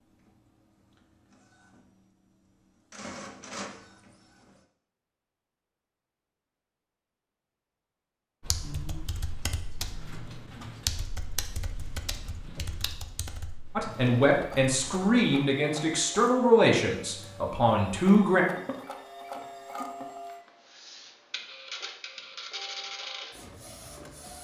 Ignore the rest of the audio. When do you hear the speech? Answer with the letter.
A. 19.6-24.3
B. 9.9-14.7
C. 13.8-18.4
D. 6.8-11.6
C.